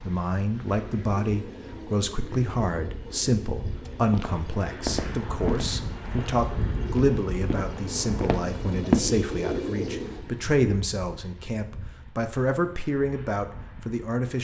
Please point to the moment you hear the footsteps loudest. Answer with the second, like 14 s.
9 s.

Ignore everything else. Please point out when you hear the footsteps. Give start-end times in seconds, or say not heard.
4.1-9.1.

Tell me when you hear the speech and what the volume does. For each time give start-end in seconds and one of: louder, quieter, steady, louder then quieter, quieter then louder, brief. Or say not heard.
0.1-14.3 steady.